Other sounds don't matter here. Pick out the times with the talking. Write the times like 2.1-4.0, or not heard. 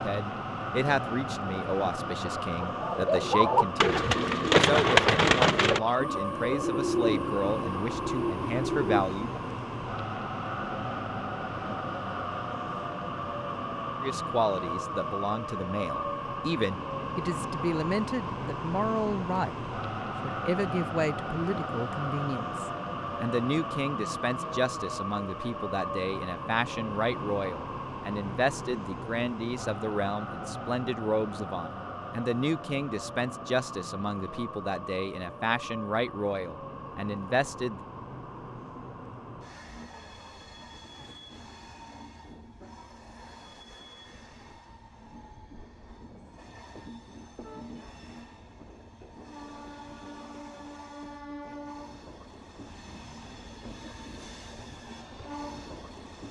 0.0-9.4, 14.0-19.6, 20.2-37.8.